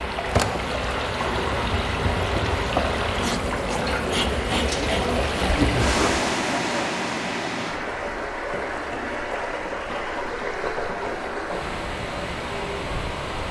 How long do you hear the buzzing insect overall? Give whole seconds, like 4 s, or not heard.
6 s.